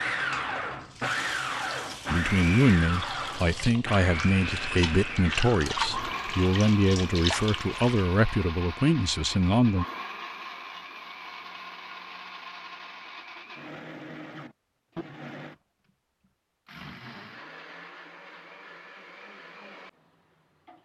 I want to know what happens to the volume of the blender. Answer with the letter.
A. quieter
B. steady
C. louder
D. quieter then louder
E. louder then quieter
A.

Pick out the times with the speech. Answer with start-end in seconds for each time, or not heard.
2.1-9.8.